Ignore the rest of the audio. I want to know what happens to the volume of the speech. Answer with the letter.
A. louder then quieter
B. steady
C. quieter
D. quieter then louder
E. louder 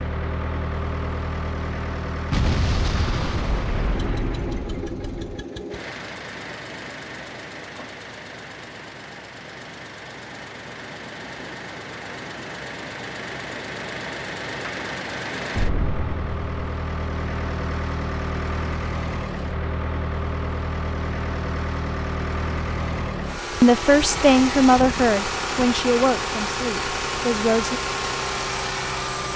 C.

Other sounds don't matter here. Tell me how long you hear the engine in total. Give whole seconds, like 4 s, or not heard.
29 s.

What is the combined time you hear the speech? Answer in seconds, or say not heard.
4 s.